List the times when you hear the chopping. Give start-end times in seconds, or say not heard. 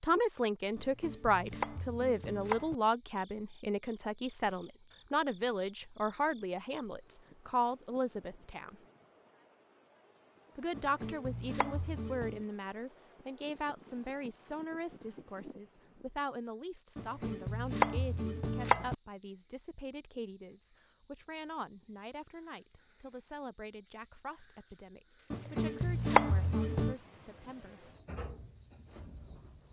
0.8-2.8, 10.7-12.4, 16.9-18.9, 25.3-26.9.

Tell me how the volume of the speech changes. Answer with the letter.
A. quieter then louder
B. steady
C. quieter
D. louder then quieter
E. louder
C.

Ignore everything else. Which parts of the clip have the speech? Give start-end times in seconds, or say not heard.
0.0-8.8, 10.6-27.9.